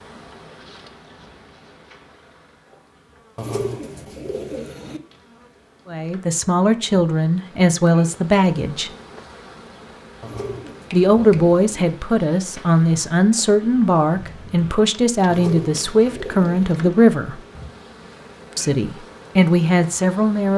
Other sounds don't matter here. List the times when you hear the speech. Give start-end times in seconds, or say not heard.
5.8-8.9, 10.9-17.4, 18.6-20.5.